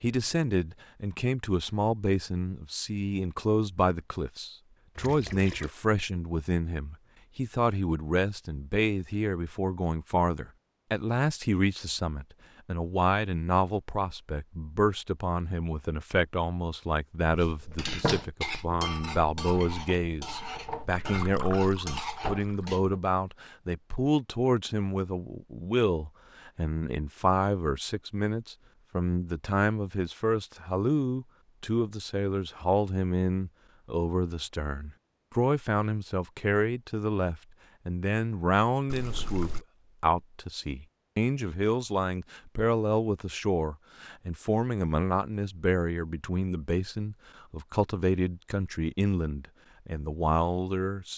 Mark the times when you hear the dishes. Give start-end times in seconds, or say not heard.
17.2-23.0.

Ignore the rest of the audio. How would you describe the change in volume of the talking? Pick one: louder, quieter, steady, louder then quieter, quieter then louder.
steady.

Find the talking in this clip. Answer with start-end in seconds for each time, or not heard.
0.0-51.1.